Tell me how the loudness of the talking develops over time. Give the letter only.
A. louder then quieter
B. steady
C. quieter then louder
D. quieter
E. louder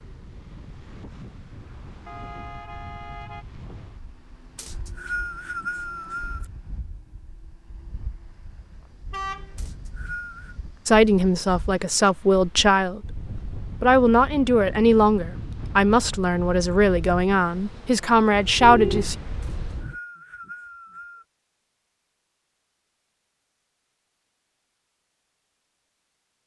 B.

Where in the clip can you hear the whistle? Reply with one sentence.
The whistle can be heard from 4.5 to 6.5 s, from 9.6 to 10.6 s and from 19.4 to 21.2 s.